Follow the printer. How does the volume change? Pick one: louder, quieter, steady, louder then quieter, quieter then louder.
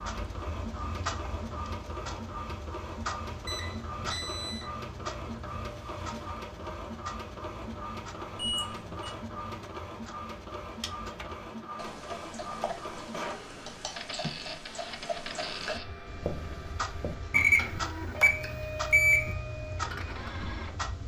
steady.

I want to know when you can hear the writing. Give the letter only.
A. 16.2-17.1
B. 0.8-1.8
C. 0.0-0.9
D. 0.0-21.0
A.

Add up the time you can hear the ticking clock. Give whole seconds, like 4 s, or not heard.
21 s.